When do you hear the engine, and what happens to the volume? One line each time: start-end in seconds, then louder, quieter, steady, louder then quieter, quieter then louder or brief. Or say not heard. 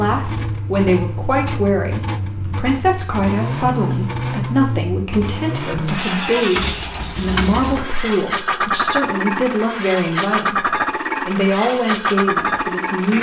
0.0-13.1 louder.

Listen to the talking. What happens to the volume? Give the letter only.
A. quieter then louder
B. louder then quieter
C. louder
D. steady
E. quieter
D.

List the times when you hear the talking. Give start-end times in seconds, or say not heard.
0.0-13.1.